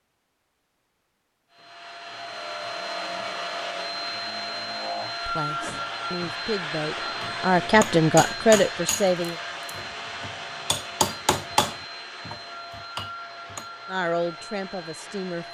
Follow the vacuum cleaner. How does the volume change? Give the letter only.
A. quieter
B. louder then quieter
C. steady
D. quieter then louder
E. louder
A.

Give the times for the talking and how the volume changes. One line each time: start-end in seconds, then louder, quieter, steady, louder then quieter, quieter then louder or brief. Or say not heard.
5.2-9.4 louder
13.8-15.4 brief.